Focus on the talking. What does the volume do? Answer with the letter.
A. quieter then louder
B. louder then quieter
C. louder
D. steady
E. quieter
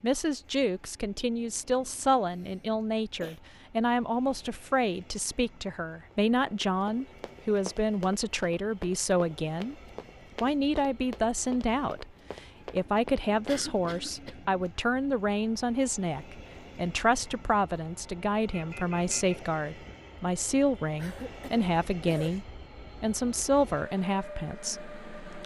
D.